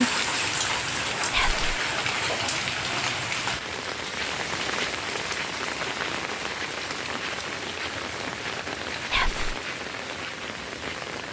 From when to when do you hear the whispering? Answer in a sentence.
You can hear the whispering from 1.3 to 1.8 s and from 9.1 to 9.6 s.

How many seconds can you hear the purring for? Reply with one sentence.
The purring can't be heard in this clip.